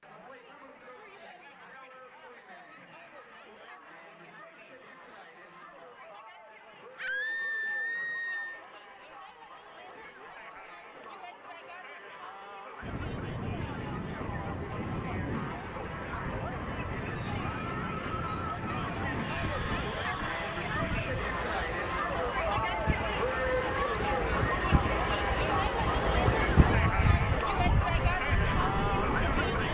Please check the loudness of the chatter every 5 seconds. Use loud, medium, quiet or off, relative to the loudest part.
quiet, quiet, quiet, medium, loud, loud.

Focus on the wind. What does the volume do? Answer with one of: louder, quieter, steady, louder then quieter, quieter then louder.
louder.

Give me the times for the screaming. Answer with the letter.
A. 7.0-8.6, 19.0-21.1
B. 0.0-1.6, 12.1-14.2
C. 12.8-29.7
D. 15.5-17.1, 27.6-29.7
A.